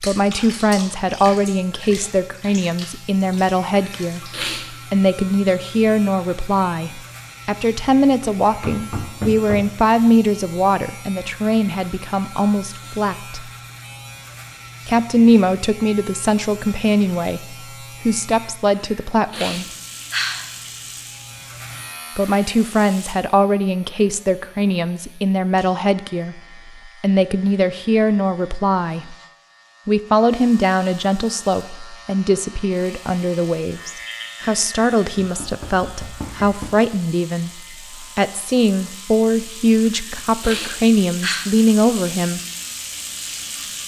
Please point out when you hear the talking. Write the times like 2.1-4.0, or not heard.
0.0-4.3, 4.9-13.5, 14.8-19.6, 22.1-26.4, 27.0-29.1, 29.9-42.4.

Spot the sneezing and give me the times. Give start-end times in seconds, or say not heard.
4.0-4.8, 18.8-20.7, 39.9-41.5.